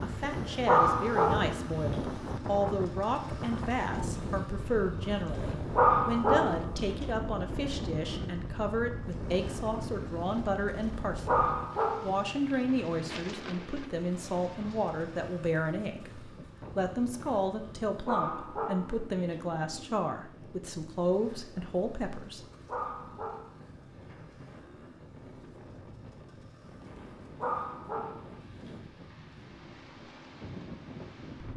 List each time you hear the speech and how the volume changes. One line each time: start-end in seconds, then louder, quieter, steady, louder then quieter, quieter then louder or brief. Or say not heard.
0.0-22.4 steady.